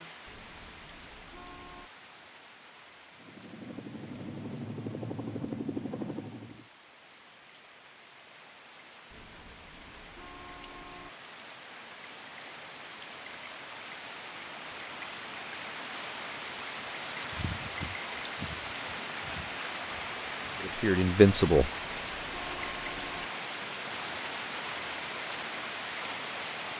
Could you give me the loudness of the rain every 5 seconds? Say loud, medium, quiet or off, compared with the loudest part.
quiet, quiet, medium, loud, loud, loud.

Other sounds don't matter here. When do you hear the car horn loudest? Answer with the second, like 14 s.
23 s.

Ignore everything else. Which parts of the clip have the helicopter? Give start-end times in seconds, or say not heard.
3.1-6.7.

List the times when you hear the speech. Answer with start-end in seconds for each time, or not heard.
20.6-21.7.